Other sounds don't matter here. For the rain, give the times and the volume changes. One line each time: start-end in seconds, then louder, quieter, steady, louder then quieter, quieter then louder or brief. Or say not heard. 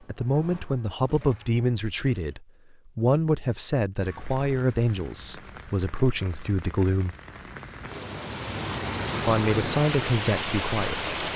4.0-11.3 louder.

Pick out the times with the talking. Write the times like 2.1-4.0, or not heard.
0.1-7.2, 9.2-11.1.